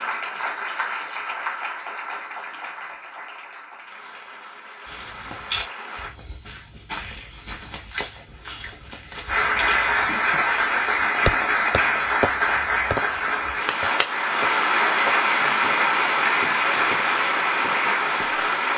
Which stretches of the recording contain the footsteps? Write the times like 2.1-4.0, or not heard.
4.8-10.2.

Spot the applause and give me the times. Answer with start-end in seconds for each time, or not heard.
0.0-6.2, 9.2-18.7.